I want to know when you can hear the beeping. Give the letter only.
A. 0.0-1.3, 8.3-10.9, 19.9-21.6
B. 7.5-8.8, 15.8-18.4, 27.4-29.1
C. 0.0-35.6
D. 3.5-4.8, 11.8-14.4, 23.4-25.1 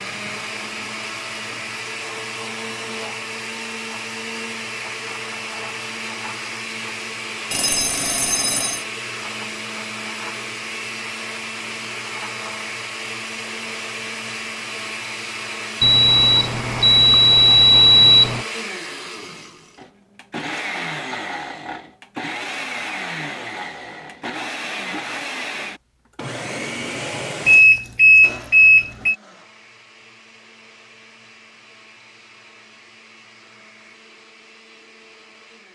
B.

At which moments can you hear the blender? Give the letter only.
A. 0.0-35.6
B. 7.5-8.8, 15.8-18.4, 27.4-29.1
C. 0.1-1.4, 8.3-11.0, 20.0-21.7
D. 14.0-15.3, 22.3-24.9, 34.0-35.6
A.